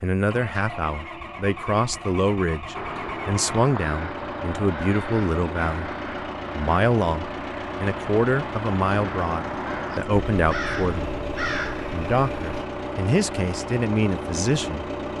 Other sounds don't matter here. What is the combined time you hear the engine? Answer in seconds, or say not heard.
15 s.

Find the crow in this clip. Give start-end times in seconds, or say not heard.
2.8-12.7.